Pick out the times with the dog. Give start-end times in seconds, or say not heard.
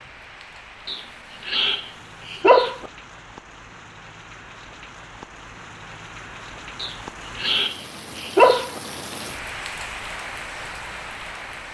0.8-2.9, 6.8-8.8.